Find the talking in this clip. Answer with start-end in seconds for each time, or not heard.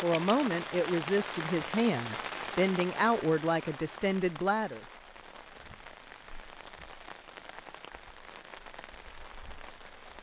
0.0-4.8.